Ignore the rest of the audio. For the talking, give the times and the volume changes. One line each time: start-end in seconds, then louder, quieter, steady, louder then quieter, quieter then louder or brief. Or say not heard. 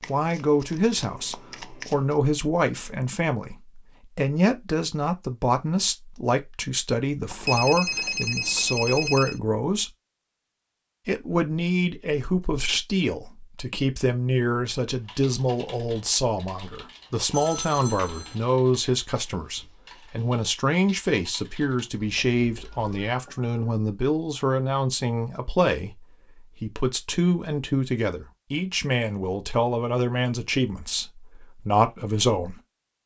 0.1-9.9 steady
11.1-32.5 steady.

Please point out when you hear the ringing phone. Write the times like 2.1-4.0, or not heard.
7.3-9.4, 17.3-18.4, 22.1-23.6.